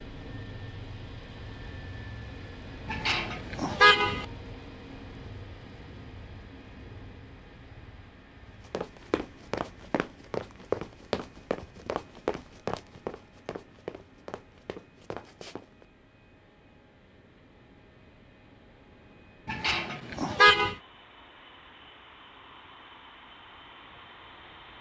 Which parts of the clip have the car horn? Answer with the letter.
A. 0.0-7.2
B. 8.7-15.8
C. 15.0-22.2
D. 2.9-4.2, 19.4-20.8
D.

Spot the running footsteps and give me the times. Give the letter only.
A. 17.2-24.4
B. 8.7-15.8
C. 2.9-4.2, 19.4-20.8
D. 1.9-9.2
B.